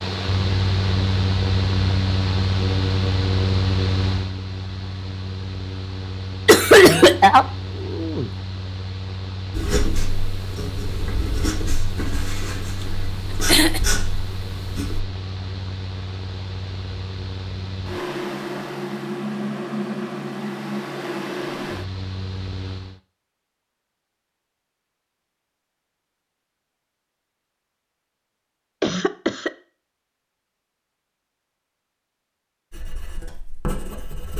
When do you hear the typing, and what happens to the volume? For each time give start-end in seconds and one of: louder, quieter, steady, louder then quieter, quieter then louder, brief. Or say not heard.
not heard.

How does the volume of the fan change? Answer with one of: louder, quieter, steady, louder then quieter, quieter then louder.
quieter then louder.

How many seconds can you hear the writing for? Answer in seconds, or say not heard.
7 s.